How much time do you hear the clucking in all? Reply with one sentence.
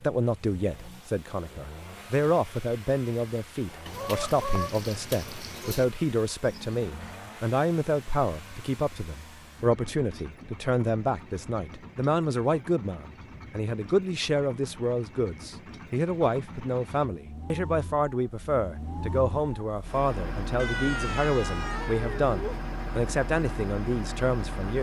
You can hear the clucking for 2 seconds altogether.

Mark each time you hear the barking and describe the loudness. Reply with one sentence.
The barking can't be heard in this clip.